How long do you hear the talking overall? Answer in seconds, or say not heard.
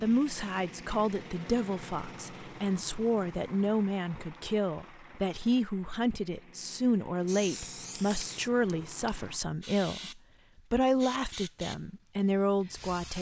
13 s.